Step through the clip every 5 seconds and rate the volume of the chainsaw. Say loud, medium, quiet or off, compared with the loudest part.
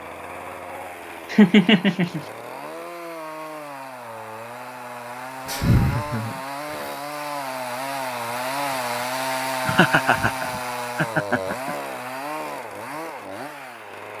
medium, loud, loud.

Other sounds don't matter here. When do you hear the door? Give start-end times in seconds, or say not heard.
not heard.